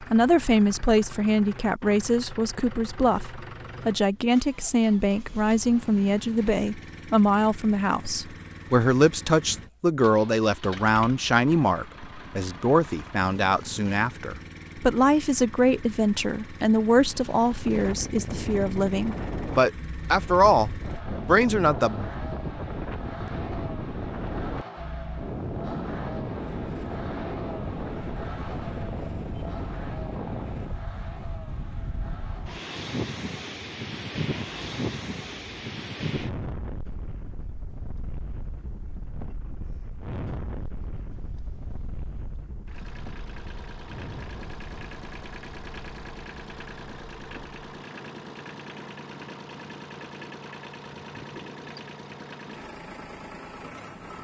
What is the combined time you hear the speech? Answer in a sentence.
The speech can be heard for 22 seconds in total.